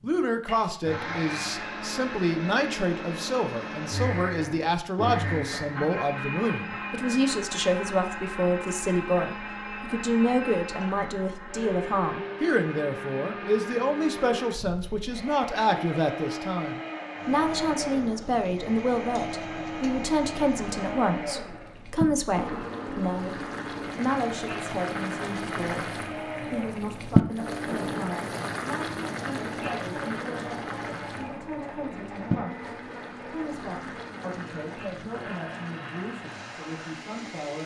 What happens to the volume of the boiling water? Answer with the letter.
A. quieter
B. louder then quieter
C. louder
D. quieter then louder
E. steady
B.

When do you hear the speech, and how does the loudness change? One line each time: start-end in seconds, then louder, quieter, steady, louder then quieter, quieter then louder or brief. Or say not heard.
0.0-37.6 quieter.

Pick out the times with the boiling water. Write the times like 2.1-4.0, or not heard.
17.1-37.6.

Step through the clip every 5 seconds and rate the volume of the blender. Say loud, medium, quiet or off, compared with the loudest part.
loud, loud, loud, loud, loud, loud, medium, medium.